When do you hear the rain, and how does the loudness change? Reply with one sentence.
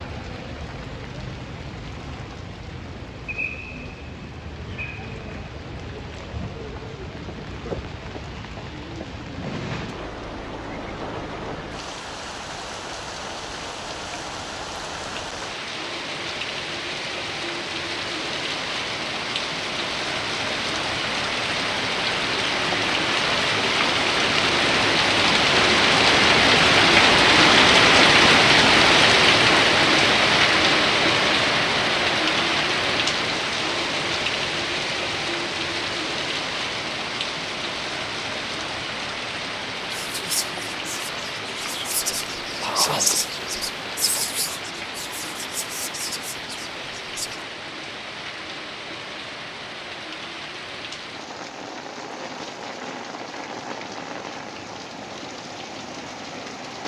The rain can be heard from 0.0 to 56.8 s, getting louder then quieter.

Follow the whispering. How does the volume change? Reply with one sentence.
The volume of the whispering goes up, then down.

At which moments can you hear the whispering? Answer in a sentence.
The whispering can be heard from 40.0 to 47.4 s.